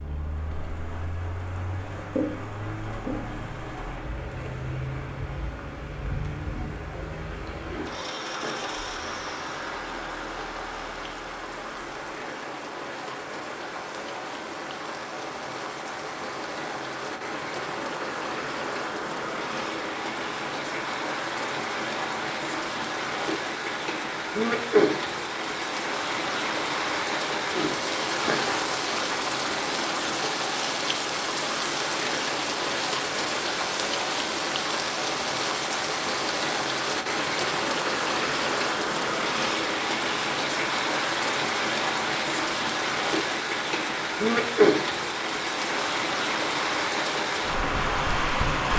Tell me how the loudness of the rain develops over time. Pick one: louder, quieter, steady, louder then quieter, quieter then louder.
louder.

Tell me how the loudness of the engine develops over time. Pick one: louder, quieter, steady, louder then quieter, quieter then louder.
louder.